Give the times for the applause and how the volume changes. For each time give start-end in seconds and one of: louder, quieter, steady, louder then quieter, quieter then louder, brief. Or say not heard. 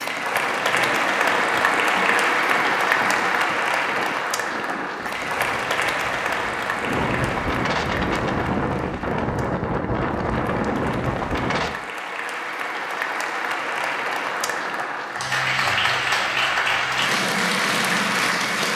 0.0-18.7 quieter then louder.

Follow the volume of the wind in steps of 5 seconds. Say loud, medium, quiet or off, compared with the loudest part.
quiet, loud, loud, off.